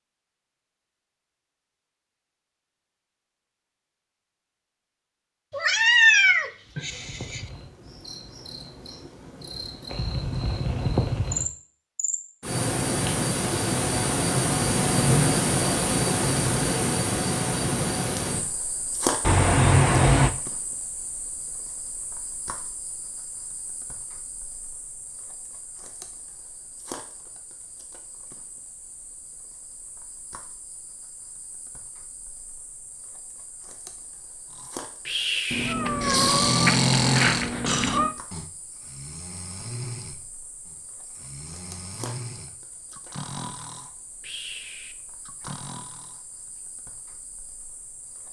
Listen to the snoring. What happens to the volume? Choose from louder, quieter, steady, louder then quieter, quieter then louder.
quieter.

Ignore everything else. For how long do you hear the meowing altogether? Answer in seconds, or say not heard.
6 s.